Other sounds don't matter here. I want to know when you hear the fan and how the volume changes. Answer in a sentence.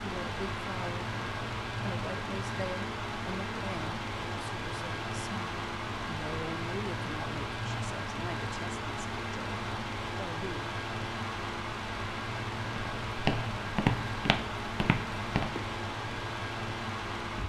The fan can be heard from 0.0 to 17.4 s, at a steady volume.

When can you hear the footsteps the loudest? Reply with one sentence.
The volume of the footsteps peaks at 14 seconds.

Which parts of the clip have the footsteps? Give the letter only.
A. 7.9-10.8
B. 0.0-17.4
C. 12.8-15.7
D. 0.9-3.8
C.